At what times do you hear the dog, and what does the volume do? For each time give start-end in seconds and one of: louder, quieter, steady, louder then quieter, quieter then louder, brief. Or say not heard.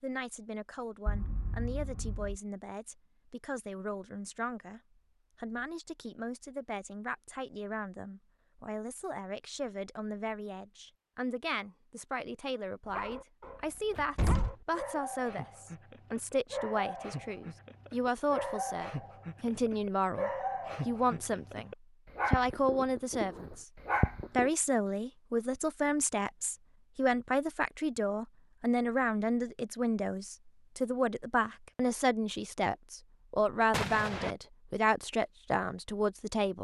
12.8-24.5 louder.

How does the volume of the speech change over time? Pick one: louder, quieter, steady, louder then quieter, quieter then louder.
louder.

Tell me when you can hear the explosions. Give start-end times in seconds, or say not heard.
1.1-2.4, 14.2-14.6, 33.7-34.4.